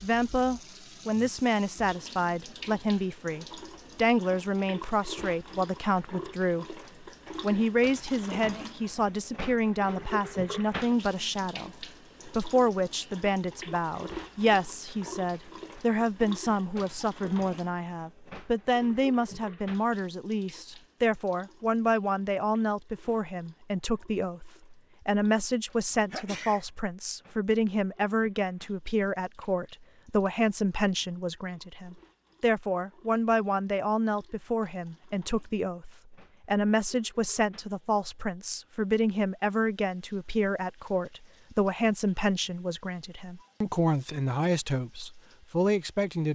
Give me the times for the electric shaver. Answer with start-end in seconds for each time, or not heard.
not heard.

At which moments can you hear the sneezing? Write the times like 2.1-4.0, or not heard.
25.9-26.6.